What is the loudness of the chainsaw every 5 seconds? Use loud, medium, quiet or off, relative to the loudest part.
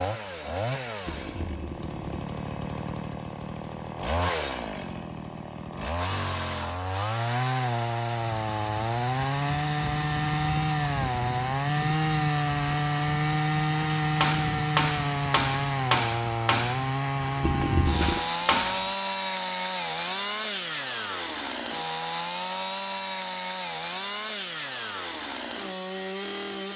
medium, loud, loud, loud, medium, medium.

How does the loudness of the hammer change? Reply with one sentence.
The loudness of the hammer goes down, then up.